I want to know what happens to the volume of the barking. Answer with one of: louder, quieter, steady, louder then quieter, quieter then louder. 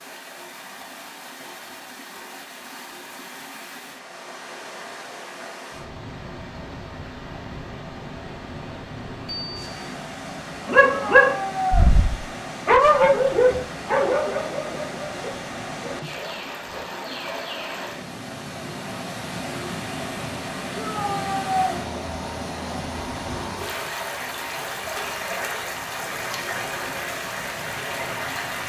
quieter.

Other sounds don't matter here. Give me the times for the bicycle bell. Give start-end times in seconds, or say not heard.
9.2-9.9.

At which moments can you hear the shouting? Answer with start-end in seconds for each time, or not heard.
10.8-11.9, 20.8-21.8.